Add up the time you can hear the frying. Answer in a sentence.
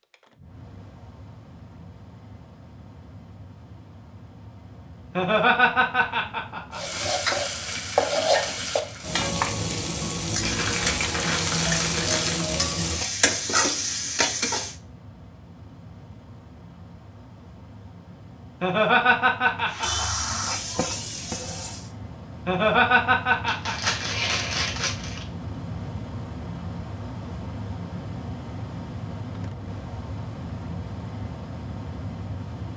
The frying can be heard for 10 seconds in total.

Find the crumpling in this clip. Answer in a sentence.
You can hear the crumpling from 10.4 to 12.4 s and from 23.4 to 25.2 s.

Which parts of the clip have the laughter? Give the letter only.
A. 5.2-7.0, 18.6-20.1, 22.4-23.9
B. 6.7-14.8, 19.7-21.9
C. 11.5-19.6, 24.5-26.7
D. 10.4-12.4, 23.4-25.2
A.